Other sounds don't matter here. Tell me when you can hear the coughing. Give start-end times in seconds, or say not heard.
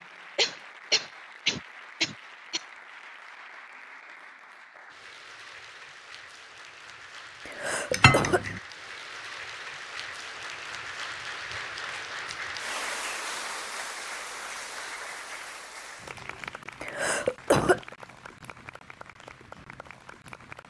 0.3-2.6, 7.5-8.4, 16.8-17.8.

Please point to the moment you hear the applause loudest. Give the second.
13 s.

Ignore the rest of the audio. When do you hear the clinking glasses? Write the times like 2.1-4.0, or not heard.
7.9-8.6.